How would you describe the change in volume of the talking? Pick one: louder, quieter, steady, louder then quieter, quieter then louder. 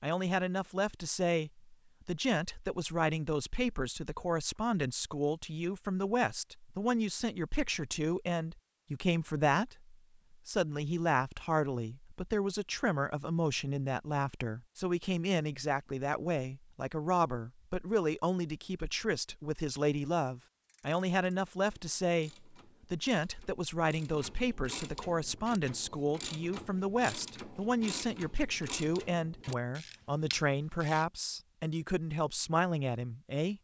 steady.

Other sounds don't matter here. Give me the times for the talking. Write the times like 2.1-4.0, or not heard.
0.0-33.5.